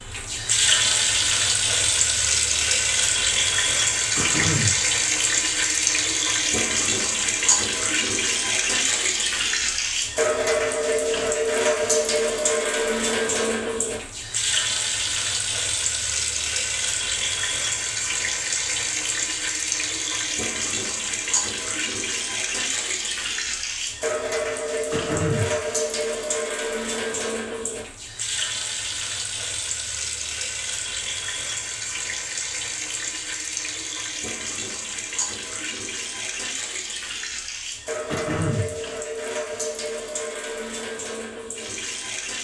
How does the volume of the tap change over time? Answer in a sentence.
The volume of the tap goes down.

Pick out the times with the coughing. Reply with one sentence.
You can hear the coughing from 4.2 to 4.8 s, from 24.9 to 25.6 s and from 38.1 to 38.8 s.